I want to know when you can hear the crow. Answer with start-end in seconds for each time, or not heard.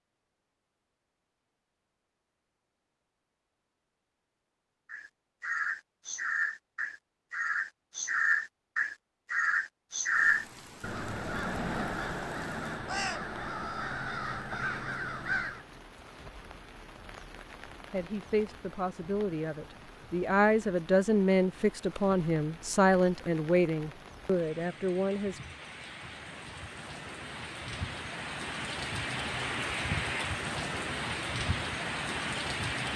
4.9-15.7.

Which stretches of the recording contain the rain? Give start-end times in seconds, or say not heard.
10.1-32.9.